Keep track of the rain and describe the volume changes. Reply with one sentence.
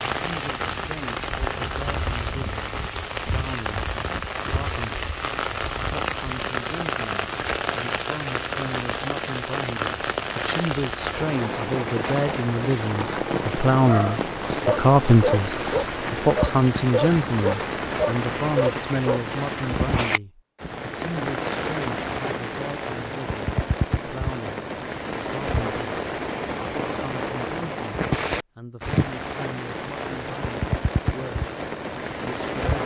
The volume of the rain stays about the same.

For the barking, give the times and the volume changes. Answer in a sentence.
You can hear the barking from 13.8 to 19.2 s, at a steady volume.